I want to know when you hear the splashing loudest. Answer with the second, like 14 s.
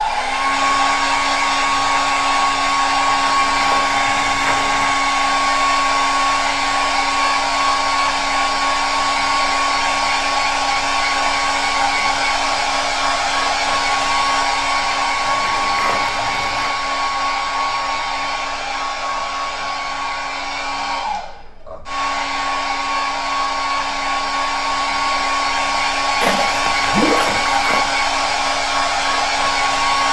27 s.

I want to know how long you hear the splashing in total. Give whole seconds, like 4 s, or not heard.
5 s.